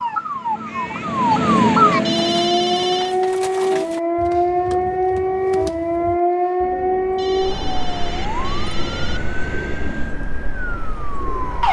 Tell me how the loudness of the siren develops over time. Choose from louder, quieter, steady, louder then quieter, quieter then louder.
quieter.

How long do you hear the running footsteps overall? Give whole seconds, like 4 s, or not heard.
not heard.